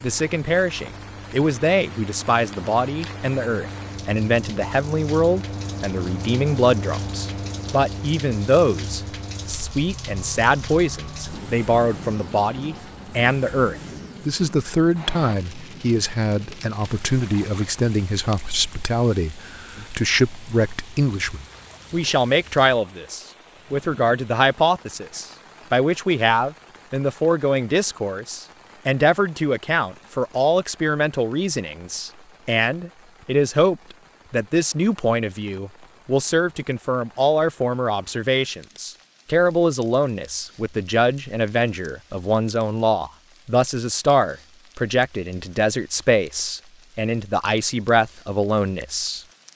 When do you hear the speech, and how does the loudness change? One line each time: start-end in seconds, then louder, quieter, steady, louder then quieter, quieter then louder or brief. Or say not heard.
0.0-49.5 steady.